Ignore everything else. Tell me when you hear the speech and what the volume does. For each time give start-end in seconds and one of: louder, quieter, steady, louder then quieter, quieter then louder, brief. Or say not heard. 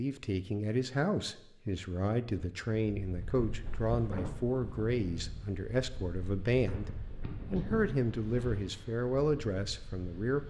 0.0-10.4 steady.